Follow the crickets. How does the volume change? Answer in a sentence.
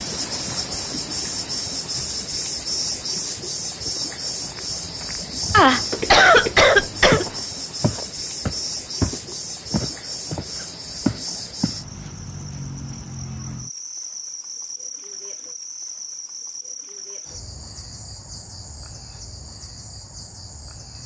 The loudness of the crickets goes down.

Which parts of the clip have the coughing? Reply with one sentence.
The coughing can be heard from 5.5 to 7.3 s.